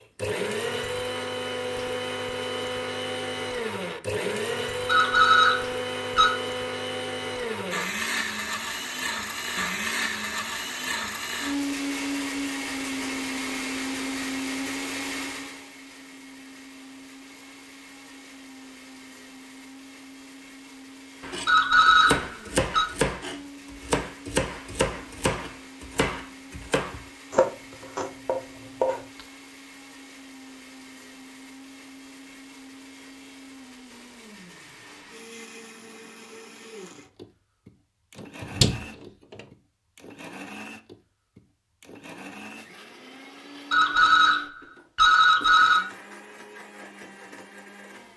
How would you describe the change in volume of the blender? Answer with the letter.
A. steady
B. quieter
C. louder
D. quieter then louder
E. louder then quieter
B.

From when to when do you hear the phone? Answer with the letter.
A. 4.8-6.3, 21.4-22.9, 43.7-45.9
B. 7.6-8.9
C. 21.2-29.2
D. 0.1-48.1
A.